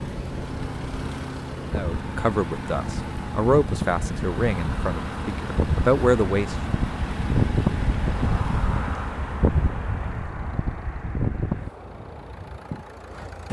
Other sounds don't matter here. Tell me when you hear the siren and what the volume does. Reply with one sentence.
You can't hear the siren here.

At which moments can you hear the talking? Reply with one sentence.
You can hear the talking from 1.7 to 6.5 s.